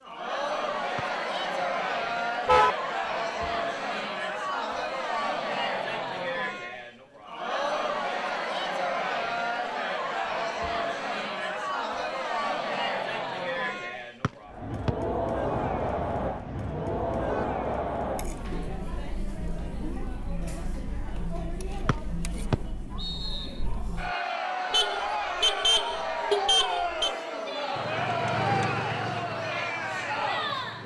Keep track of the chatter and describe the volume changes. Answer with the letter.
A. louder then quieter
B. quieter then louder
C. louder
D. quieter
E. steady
B.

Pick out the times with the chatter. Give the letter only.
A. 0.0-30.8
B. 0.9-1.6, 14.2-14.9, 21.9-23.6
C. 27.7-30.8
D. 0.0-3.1
A.